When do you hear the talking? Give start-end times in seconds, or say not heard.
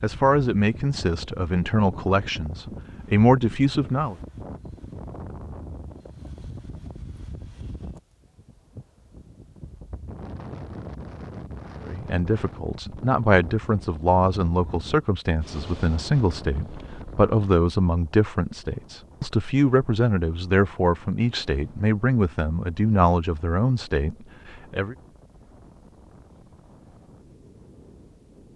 0.0-4.2, 11.8-24.9.